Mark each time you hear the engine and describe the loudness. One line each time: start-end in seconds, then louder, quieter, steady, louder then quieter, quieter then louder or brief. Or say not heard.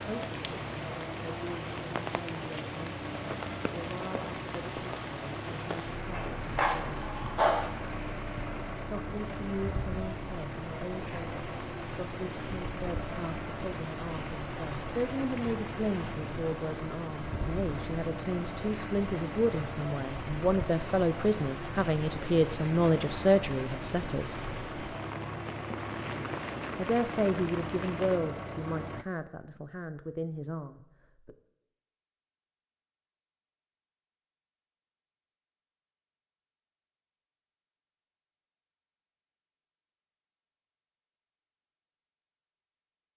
0.0-29.1 steady.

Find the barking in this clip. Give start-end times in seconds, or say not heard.
6.1-7.7.